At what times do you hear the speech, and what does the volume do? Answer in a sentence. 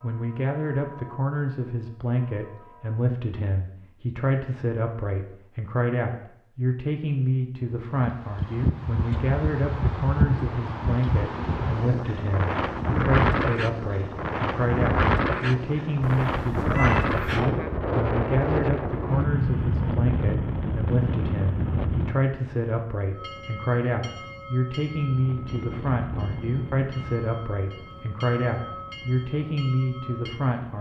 You can hear the speech from 0.0 to 30.7 s, at a steady volume.